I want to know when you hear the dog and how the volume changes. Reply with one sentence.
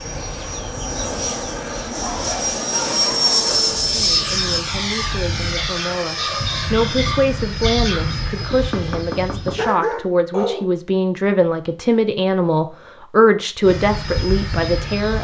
The dog can be heard from 1.9 to 10.7 s, getting louder.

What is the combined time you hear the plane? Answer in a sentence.
The plane can be heard for 11 seconds in total.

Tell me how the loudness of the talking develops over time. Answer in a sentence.
The volume of the talking goes up.